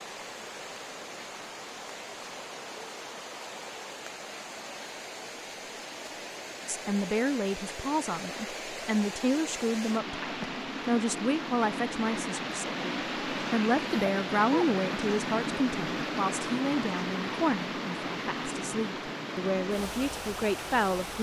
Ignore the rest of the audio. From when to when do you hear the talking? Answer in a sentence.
The talking can be heard from 6.7 to 21.1 s.